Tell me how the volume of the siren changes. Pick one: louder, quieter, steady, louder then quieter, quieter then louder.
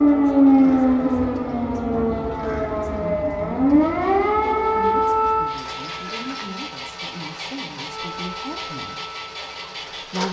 quieter.